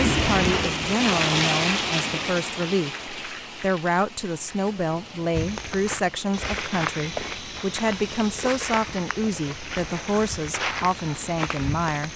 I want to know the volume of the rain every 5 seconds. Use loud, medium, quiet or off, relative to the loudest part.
loud, quiet, quiet.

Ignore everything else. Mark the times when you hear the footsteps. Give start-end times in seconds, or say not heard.
5.3-12.1.